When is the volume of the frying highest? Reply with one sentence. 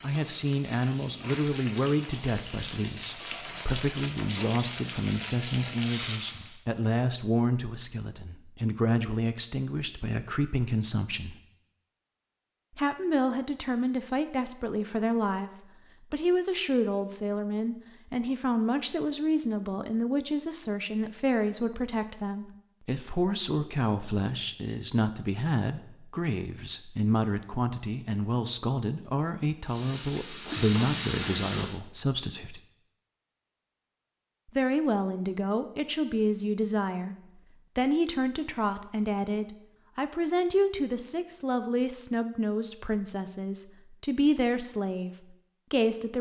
The volume of the frying peaks at 31 seconds.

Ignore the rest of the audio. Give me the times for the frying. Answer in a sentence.
You can hear the frying from 0.0 to 6.6 s and from 29.6 to 31.8 s.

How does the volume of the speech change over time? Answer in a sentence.
The volume of the speech stays about the same.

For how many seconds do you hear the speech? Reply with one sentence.
The speech can be heard for 43 seconds in total.